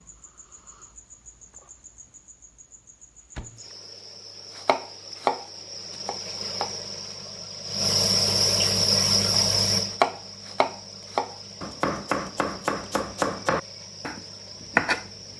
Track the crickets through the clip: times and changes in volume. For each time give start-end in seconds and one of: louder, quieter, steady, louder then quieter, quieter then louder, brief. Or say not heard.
0.0-15.3 louder then quieter.